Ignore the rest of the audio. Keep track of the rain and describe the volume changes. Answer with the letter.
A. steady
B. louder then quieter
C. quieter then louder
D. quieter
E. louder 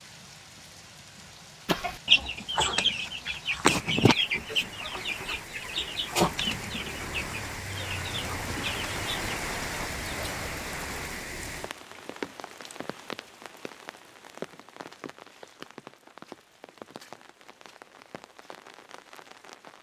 B.